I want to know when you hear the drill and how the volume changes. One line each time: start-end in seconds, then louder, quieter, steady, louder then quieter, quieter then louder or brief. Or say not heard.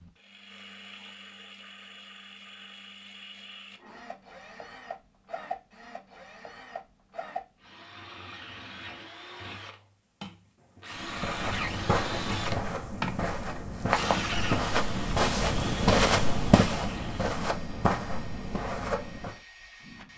0.0-20.1 louder then quieter.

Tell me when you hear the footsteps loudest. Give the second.
16 s.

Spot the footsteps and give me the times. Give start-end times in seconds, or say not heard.
11.0-19.4.